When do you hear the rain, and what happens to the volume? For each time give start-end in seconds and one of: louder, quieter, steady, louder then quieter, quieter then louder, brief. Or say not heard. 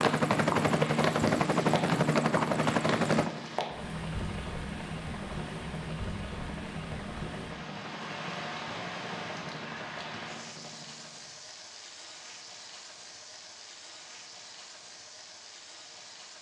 0.0-16.3 quieter.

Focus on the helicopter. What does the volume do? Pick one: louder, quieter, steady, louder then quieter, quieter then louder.
quieter.